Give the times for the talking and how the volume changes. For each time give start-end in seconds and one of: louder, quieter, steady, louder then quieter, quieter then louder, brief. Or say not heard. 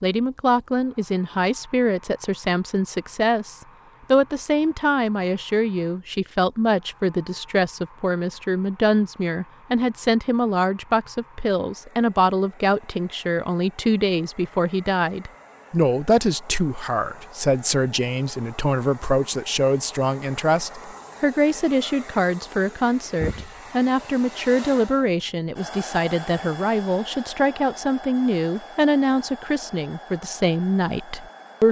0.0-31.6 steady.